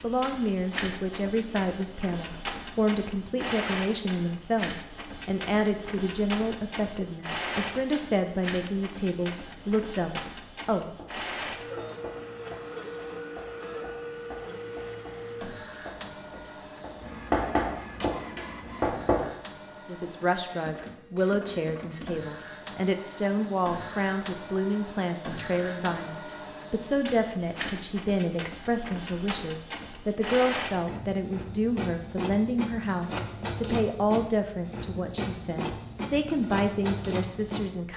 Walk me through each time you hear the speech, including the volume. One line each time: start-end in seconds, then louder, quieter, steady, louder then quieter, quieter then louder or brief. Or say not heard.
0.0-10.9 steady
19.9-37.9 steady.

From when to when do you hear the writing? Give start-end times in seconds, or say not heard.
10.9-19.2.